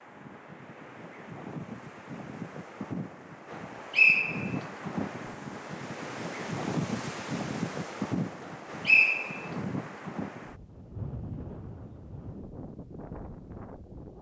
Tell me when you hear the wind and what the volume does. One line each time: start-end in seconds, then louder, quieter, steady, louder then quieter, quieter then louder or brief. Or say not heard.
0.0-14.1 louder then quieter.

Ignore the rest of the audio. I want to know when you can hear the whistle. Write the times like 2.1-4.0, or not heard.
3.9-4.7, 8.8-9.5.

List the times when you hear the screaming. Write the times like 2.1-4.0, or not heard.
not heard.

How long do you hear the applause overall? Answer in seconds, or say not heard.
not heard.